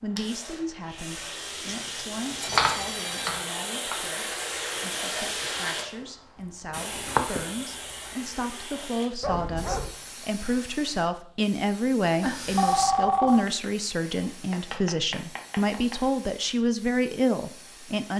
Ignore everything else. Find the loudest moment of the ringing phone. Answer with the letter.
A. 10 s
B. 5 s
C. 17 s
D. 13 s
D.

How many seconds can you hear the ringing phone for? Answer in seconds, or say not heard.
4 s.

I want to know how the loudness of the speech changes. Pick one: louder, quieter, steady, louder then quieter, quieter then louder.
louder.